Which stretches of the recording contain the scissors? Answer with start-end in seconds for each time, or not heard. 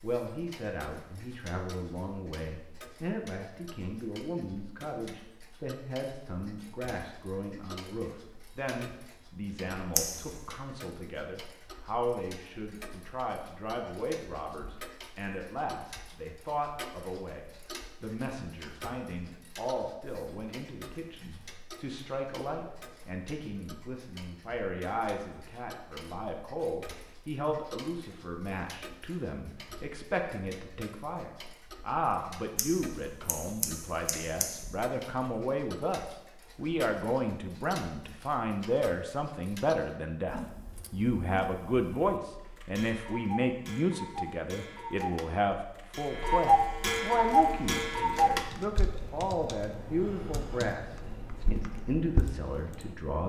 9.9-10.4, 32.5-34.5.